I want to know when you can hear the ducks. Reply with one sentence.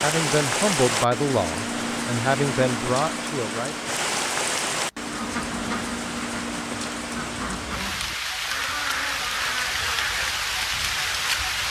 The ducks can be heard from 5.0 to 11.1 s.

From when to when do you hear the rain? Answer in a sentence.
The rain can be heard from 0.0 to 11.6 s.